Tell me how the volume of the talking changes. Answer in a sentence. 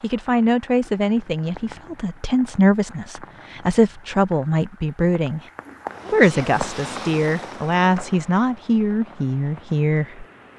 The loudness of the talking stays about the same.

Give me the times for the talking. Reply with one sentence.
The talking can be heard from 0.0 to 5.4 s and from 6.1 to 10.2 s.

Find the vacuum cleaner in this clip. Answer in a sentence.
The vacuum cleaner can't be heard in this clip.